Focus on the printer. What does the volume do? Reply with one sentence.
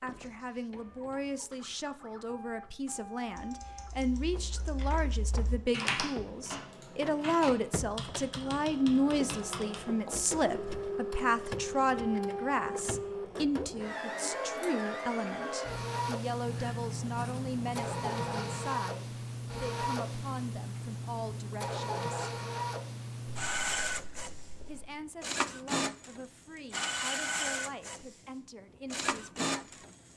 The loudness of the printer goes up.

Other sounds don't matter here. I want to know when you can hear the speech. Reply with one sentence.
You can hear the speech from 0.0 to 22.4 s and from 24.6 to 29.9 s.